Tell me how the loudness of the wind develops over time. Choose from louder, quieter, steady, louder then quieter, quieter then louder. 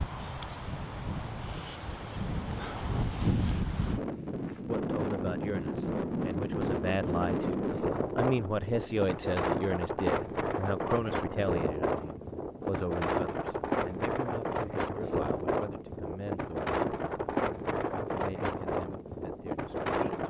steady.